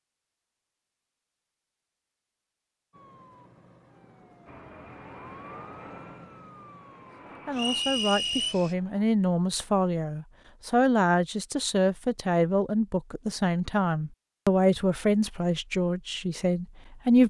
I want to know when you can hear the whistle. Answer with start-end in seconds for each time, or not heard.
7.5-8.6.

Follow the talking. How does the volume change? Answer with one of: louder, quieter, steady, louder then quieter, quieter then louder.
steady.